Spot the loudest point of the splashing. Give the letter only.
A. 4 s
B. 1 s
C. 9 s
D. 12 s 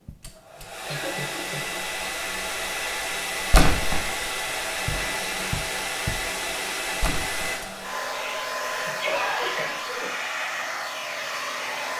A.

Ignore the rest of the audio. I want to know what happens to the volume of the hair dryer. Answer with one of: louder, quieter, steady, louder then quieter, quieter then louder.
steady.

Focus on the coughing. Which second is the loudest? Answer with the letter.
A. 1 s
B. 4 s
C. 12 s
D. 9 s
D.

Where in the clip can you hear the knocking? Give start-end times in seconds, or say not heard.
4.8-6.2.